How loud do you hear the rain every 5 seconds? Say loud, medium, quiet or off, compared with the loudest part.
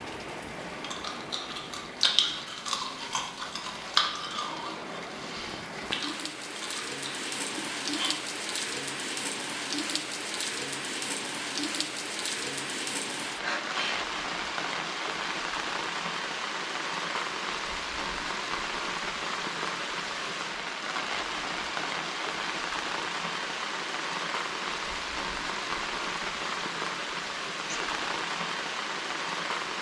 medium, loud, loud, loud, loud, loud.